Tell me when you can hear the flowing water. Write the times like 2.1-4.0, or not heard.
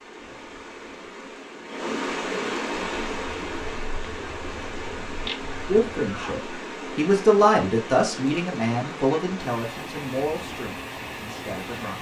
0.0-11.9.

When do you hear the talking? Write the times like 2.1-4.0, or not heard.
5.7-11.9.